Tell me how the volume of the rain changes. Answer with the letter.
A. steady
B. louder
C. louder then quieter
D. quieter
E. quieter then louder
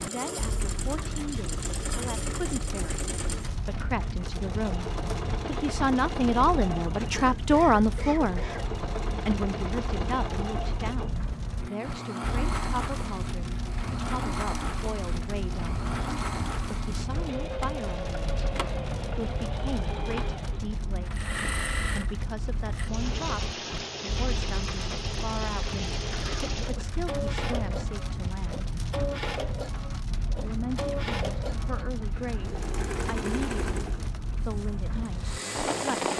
A.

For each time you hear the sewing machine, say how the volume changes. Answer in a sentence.
You can hear the sewing machine from 0.0 to 36.1 s, at a steady volume.